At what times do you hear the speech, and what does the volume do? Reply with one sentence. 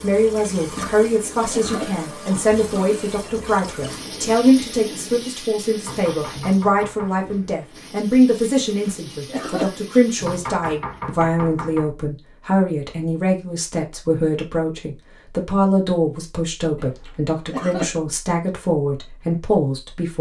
The speech can be heard from 0.0 to 20.1 s, at a steady volume.